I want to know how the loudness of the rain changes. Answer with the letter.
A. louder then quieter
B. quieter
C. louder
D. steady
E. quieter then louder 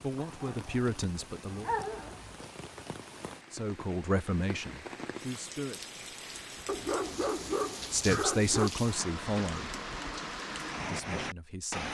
C.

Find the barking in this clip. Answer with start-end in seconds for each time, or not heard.
0.1-2.4, 6.7-8.7.